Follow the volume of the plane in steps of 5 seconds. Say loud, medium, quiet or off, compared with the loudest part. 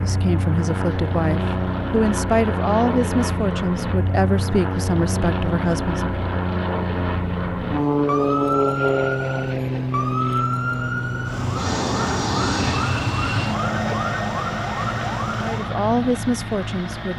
loud, loud, loud, medium.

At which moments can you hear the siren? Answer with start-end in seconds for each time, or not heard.
8.0-15.8.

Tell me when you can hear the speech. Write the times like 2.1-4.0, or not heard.
0.0-6.1, 15.4-17.1.